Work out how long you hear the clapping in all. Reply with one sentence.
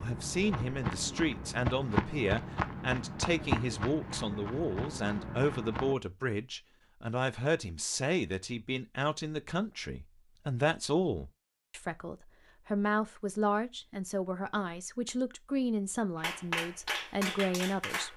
The clapping can be heard for 2 seconds in total.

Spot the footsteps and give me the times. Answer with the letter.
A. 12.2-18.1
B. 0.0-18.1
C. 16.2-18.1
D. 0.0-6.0
D.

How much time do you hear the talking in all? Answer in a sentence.
You can hear the talking for 18 seconds altogether.